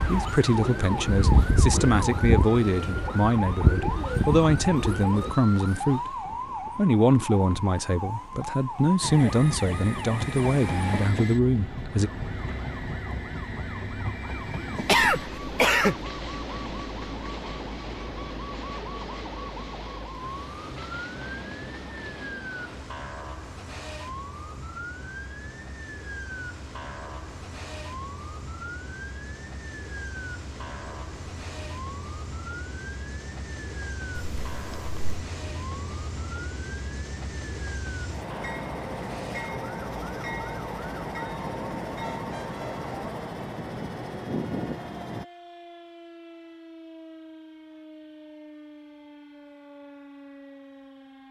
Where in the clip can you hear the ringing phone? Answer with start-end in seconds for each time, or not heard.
not heard.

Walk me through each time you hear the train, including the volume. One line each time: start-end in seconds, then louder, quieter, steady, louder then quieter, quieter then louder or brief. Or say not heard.
9.0-45.2 quieter then louder.